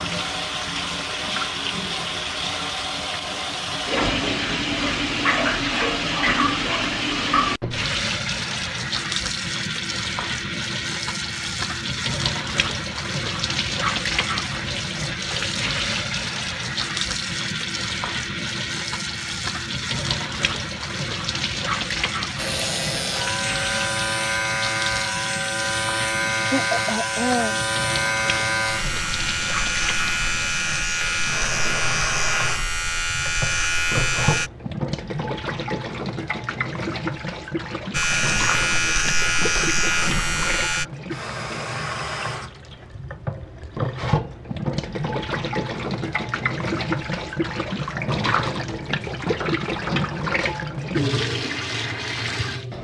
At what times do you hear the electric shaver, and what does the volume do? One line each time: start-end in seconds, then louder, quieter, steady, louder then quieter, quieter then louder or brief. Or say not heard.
22.4-34.5 steady
37.9-40.9 brief.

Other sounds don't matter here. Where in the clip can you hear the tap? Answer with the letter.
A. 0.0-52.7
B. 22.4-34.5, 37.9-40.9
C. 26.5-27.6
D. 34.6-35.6
A.